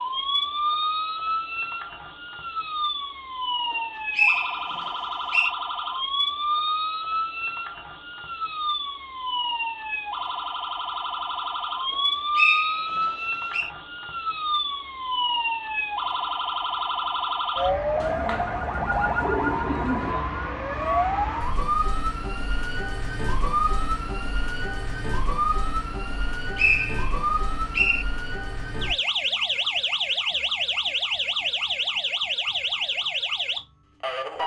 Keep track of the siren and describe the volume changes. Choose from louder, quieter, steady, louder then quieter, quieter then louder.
steady.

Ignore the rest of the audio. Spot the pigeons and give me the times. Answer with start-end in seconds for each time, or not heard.
18.0-20.1.